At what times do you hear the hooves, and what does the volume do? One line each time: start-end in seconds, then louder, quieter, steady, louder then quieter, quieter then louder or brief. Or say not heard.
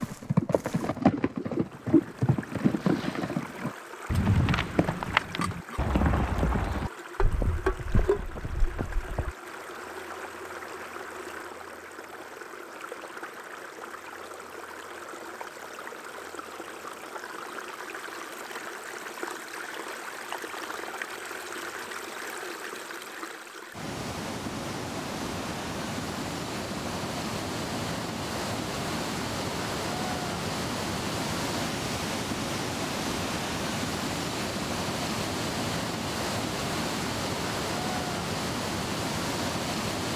0.0-9.3 quieter.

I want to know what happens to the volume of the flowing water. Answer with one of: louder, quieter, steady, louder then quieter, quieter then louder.
louder.